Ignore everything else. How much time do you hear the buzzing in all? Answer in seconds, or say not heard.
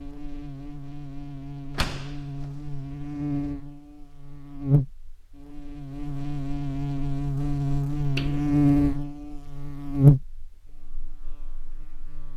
12 s.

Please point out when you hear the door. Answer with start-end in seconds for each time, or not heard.
1.7-3.5, 8.2-8.6.